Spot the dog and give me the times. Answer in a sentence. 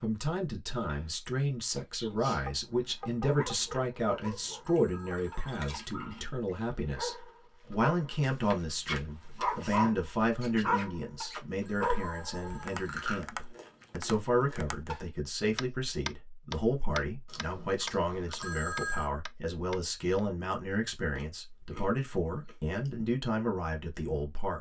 The dog can be heard from 2.5 to 12.8 s.